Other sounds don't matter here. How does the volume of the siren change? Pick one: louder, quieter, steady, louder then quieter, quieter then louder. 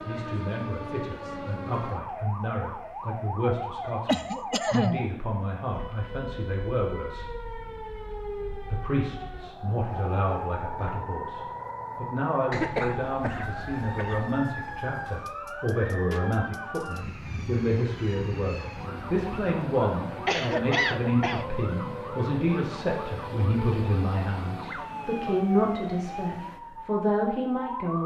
steady.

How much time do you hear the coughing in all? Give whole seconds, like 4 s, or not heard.
4 s.